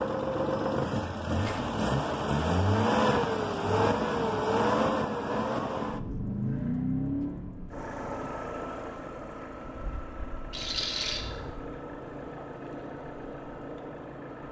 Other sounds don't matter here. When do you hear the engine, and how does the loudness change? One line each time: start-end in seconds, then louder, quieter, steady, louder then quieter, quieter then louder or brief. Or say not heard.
0.0-14.4 quieter.